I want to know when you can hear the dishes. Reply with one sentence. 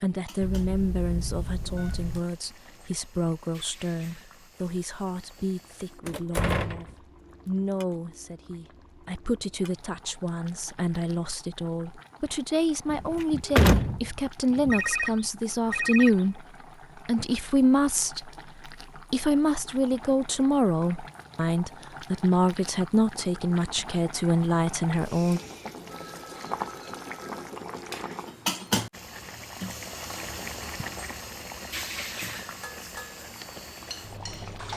You can hear the dishes from 32.6 to 34.7 s.